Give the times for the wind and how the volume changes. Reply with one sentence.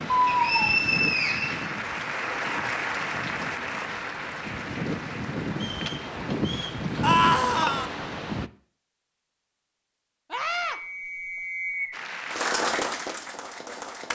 The wind can be heard from 0.0 to 8.5 s, getting quieter then louder.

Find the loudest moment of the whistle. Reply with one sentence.
The loudest moment of the whistle is at 1 second.